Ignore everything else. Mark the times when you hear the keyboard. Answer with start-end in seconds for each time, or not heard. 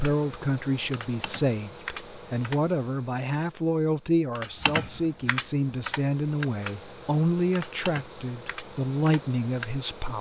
0.0-2.6, 4.3-10.1.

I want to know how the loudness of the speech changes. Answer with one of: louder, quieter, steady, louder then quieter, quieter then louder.
steady.